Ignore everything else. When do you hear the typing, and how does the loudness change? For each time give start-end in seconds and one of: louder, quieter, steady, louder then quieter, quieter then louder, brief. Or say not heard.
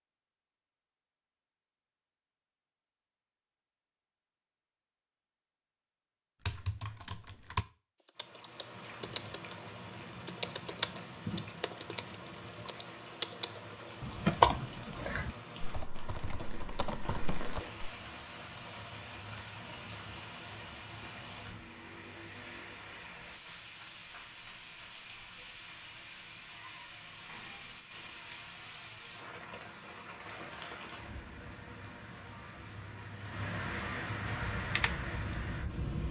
6.5-17.9 louder then quieter
34.4-36.0 brief.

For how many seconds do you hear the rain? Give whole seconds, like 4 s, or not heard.
28 s.